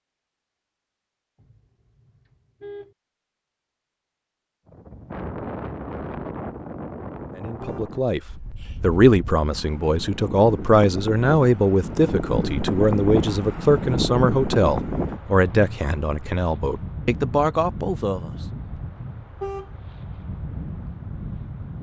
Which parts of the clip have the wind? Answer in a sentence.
You can hear the wind from 4.7 to 21.7 s.